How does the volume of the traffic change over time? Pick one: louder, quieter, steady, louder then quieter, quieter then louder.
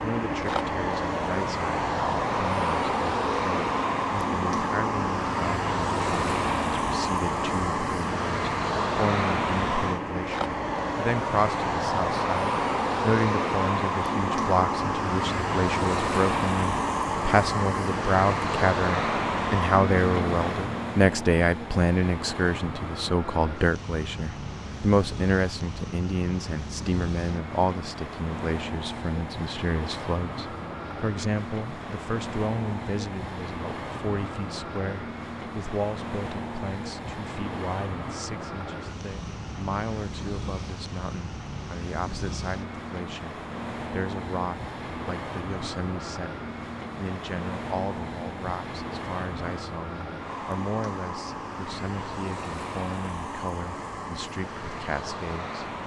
quieter.